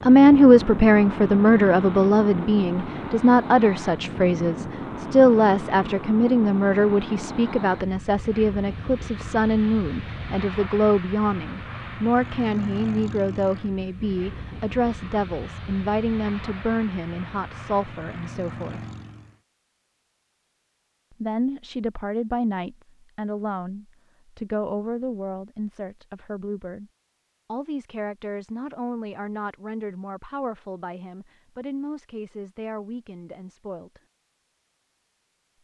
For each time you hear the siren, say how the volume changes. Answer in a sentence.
The siren can't be heard in this clip.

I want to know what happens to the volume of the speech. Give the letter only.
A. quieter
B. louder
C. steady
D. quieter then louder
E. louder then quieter
A.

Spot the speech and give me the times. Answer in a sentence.
You can hear the speech from 0.0 to 18.8 s, from 21.2 to 26.9 s and from 27.5 to 34.0 s.